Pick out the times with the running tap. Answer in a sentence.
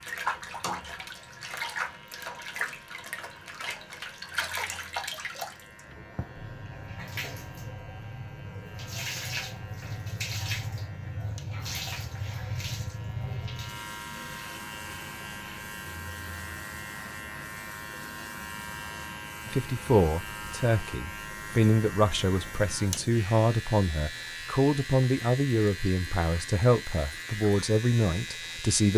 The running tap can be heard from 0.0 to 28.8 s.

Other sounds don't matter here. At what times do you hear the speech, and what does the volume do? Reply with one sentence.
The speech can be heard from 19.4 to 28.9 s, at a steady volume.